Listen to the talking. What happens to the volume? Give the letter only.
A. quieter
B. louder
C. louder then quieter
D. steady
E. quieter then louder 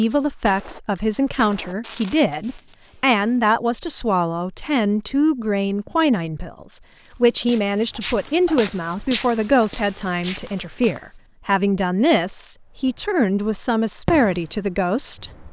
D.